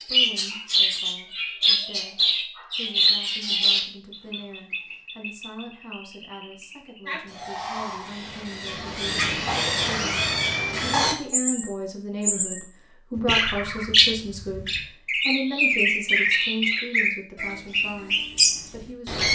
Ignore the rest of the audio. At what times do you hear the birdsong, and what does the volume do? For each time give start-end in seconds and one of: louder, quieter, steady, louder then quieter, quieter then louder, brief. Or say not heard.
0.0-19.3 quieter then louder.